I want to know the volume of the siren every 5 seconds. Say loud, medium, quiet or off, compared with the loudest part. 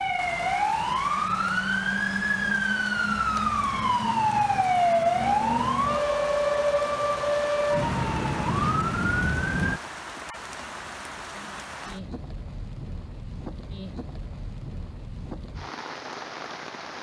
loud, loud, off, off.